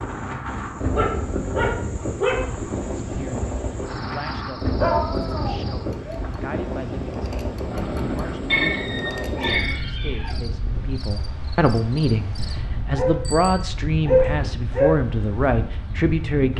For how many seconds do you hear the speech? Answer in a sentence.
You can hear the speech for 14 seconds altogether.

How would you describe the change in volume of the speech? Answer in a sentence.
The volume of the speech goes up.